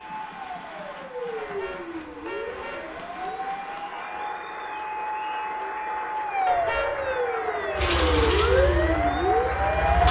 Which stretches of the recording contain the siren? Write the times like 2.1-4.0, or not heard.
0.0-10.0.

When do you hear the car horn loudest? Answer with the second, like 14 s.
7 s.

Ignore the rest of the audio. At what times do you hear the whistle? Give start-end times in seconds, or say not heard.
not heard.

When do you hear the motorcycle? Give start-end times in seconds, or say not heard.
7.8-10.0.